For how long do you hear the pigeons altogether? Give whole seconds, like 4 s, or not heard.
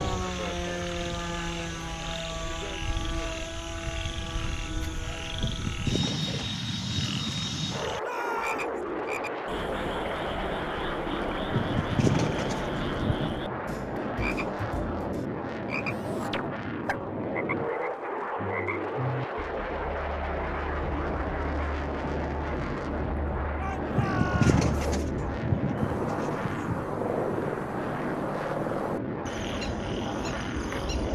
7 s.